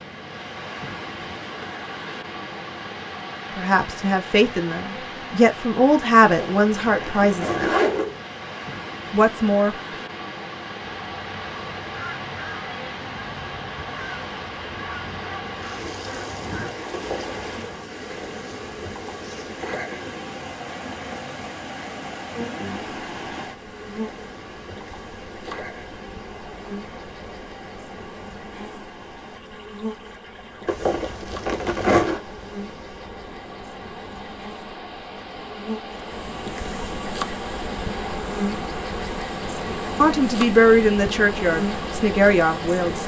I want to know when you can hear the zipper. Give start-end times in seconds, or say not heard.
6.2-8.2, 16.9-17.4, 30.6-32.2.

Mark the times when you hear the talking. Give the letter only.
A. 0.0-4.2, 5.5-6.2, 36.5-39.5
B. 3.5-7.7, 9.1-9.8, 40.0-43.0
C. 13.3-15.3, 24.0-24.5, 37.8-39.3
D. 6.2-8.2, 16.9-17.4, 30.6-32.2
B.